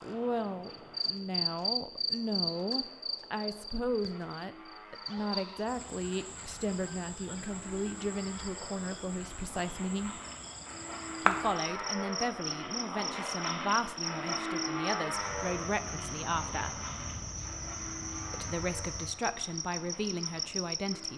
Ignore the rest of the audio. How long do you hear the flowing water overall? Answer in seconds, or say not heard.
not heard.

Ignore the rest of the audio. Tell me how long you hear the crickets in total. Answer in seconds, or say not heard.
21 s.